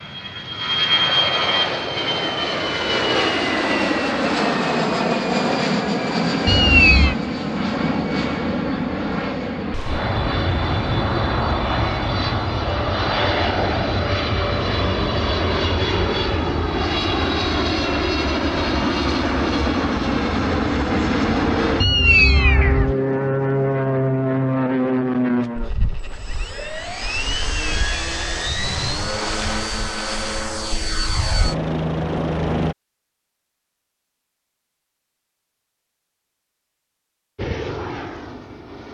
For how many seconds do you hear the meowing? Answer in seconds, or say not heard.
3 s.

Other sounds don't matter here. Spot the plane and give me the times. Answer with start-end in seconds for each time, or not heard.
0.0-32.8, 37.4-38.8.